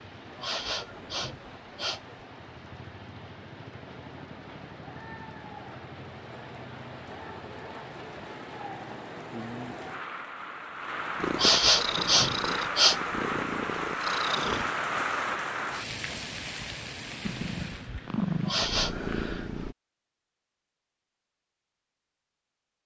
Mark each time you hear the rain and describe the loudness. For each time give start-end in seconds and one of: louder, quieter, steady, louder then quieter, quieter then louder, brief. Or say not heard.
0.0-17.9 louder.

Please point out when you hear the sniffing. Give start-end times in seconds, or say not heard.
0.3-2.1, 11.3-13.4, 18.4-19.1.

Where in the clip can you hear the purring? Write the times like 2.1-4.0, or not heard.
11.2-14.8, 17.2-19.8.